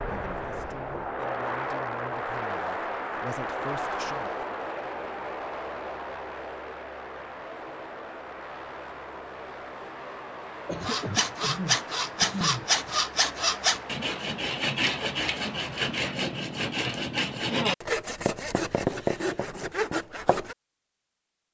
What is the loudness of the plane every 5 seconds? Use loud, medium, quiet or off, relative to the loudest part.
loud, medium, medium, medium, off.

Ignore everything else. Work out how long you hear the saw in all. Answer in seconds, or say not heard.
10 s.